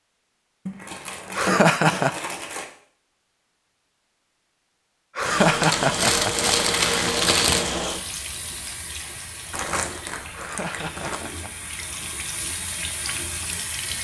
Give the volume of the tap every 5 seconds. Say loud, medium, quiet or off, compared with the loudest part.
off, loud, medium.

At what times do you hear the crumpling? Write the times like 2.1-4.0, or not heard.
0.7-2.6, 5.6-7.7, 9.5-11.2.